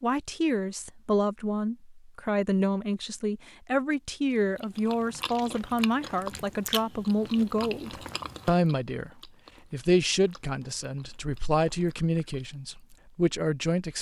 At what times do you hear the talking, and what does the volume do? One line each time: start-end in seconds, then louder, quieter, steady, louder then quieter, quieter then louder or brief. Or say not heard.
0.0-13.9 steady.